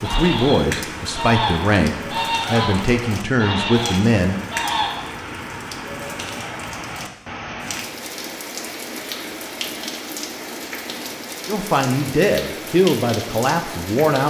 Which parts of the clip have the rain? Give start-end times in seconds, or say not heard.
0.0-14.2.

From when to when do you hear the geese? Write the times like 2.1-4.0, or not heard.
0.0-5.0.